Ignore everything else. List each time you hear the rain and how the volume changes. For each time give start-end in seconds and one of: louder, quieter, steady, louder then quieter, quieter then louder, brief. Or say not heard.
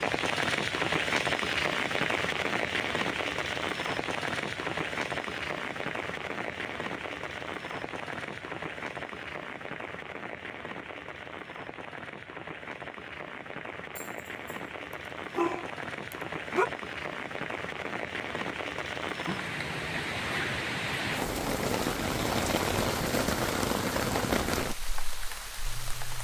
0.0-26.1 quieter then louder.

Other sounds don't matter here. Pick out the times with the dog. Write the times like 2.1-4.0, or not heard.
13.9-14.6, 15.3-16.7.